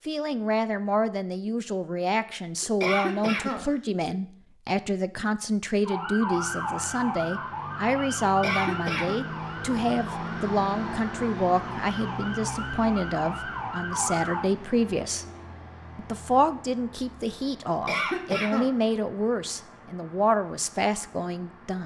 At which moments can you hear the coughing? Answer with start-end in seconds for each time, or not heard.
2.6-4.2, 8.2-9.2, 17.6-18.7.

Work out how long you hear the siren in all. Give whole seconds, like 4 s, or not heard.
9 s.